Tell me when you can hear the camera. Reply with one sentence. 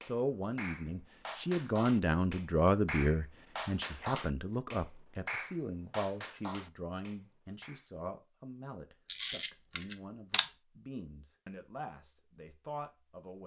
You can hear the camera from 9.1 to 10.5 s.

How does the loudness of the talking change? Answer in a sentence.
The loudness of the talking goes down.